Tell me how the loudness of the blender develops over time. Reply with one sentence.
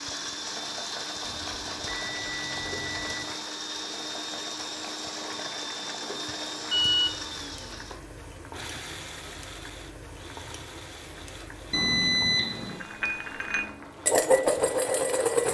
The volume of the blender goes down.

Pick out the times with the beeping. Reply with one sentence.
You can hear the beeping from 1.2 to 3.2 s, from 6.2 to 7.2 s and from 11.7 to 12.8 s.